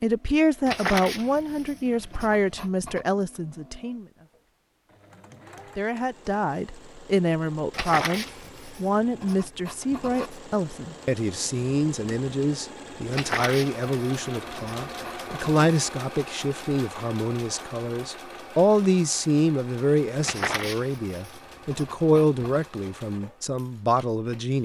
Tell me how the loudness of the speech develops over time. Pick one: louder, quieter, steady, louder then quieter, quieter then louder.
steady.